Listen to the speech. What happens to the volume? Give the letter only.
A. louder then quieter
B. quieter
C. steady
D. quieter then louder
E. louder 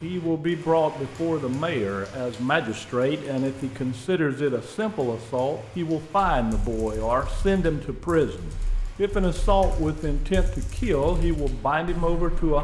C.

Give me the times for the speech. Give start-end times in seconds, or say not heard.
0.0-12.5.